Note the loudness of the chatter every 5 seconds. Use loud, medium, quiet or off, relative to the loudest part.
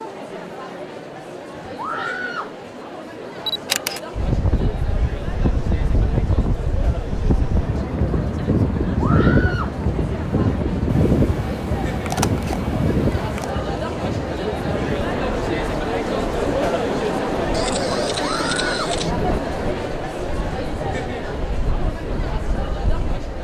medium, medium, medium, loud, medium.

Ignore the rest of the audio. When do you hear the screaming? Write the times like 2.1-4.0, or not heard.
1.8-2.5, 8.9-9.8, 18.2-18.8.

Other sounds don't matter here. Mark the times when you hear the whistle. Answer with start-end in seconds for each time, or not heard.
not heard.